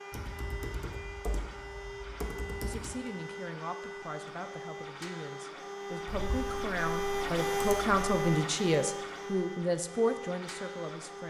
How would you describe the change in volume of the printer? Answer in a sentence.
The volume of the printer goes up, then down.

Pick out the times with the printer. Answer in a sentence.
The printer can be heard from 0.0 to 11.2 s.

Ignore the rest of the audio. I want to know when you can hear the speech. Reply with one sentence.
You can hear the speech from 2.6 to 11.2 s.